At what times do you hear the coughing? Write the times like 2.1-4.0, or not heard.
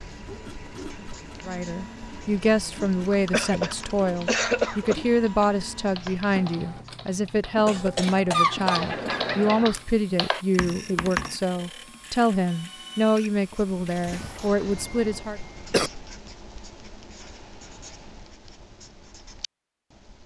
3.3-5.0, 7.7-9.7, 14.1-15.9.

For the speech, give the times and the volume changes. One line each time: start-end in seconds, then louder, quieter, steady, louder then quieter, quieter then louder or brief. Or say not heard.
1.4-15.4 steady.